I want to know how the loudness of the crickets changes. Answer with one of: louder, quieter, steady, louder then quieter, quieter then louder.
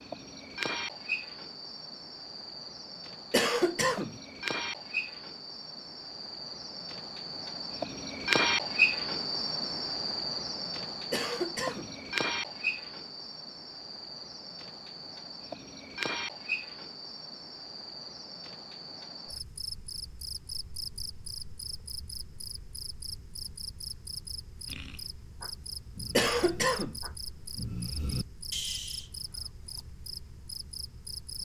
louder then quieter.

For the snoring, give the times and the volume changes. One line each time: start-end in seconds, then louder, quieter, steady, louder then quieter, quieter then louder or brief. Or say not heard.
24.6-29.9 louder.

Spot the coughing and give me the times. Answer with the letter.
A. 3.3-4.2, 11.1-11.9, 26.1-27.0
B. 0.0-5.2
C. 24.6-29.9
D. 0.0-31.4
A.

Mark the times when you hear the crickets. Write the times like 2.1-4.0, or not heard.
0.0-31.4.